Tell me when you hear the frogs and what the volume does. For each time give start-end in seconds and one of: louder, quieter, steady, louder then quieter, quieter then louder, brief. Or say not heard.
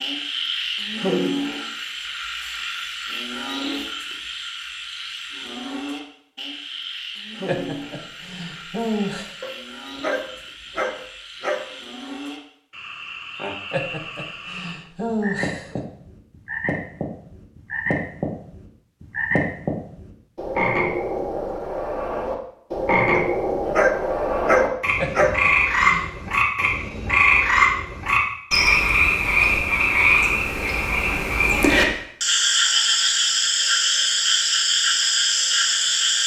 0.0-36.2 quieter then louder.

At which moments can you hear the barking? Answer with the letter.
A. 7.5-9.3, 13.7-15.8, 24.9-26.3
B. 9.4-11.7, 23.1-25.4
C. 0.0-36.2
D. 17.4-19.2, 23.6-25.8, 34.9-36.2
B.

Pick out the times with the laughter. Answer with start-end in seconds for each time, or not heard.
7.5-9.3, 13.7-15.8, 24.9-26.3.